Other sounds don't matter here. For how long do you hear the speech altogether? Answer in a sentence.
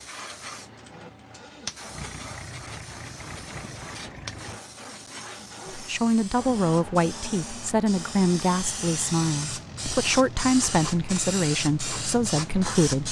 You can hear the speech for 7 seconds altogether.